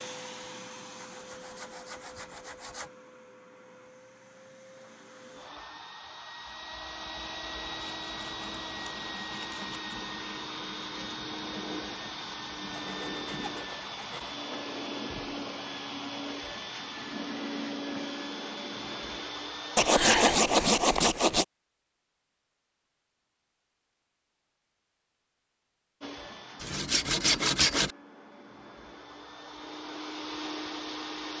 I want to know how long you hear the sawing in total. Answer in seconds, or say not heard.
8 s.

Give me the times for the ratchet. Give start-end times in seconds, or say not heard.
not heard.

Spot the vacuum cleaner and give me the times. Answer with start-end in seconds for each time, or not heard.
0.0-19.9, 26.0-31.3.